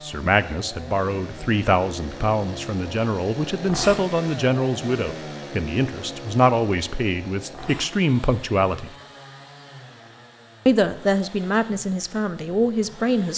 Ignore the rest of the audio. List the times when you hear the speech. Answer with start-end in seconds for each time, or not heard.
0.0-8.9, 10.7-13.3.